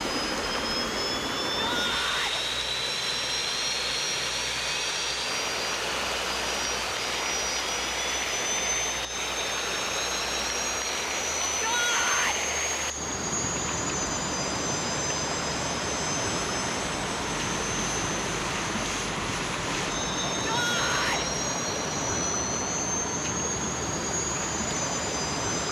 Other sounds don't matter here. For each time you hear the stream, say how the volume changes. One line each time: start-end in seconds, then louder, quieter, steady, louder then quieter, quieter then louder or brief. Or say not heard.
0.0-25.6 steady.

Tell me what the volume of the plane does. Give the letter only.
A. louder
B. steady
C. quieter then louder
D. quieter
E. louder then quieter
B.